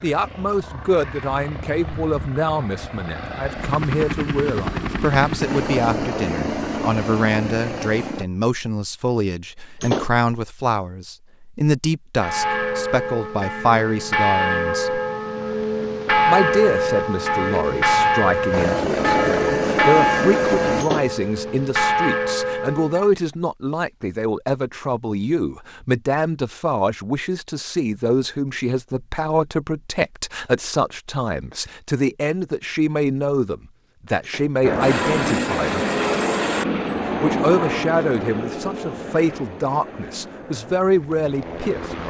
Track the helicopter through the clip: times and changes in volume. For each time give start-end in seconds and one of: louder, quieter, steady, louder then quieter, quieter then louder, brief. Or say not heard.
0.0-8.2 louder
18.5-20.9 brief
34.6-42.0 quieter.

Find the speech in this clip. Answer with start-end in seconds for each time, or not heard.
0.0-15.0, 16.2-35.9, 37.2-42.0.